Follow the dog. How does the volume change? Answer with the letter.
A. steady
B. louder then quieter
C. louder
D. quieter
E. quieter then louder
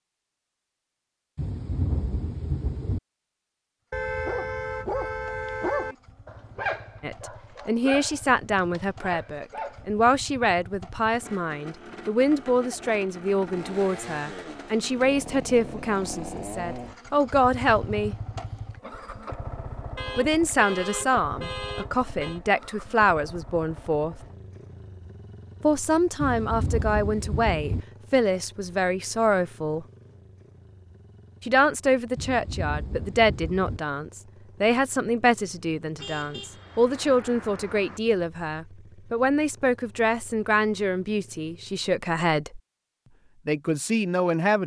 D.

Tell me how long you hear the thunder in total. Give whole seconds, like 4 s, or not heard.
5 s.